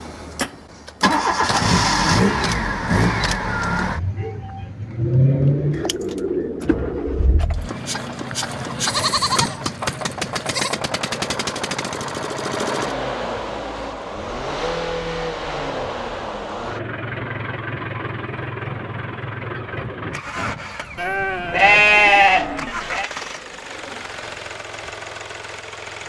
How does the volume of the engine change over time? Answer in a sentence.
The loudness of the engine goes down.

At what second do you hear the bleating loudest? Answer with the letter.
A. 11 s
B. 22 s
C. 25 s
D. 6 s
B.